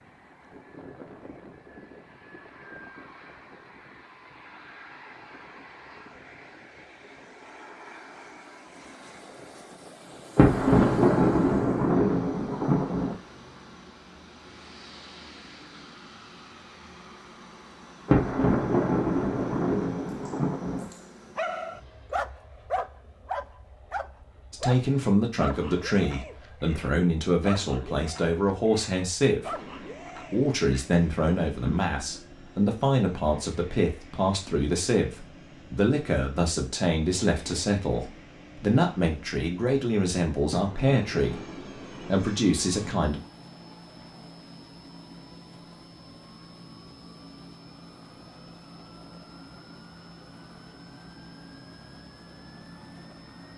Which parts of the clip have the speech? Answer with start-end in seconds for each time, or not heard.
24.5-29.6, 30.2-43.2.